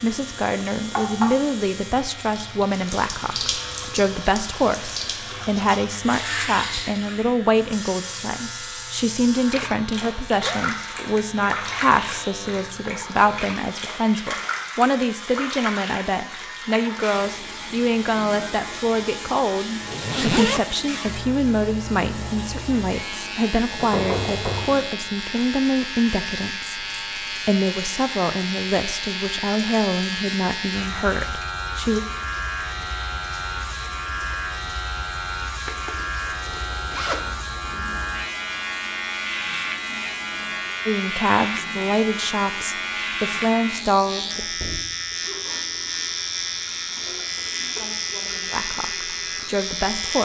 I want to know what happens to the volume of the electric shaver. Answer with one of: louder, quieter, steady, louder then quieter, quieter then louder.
louder.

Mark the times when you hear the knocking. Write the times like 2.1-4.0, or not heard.
23.8-24.9.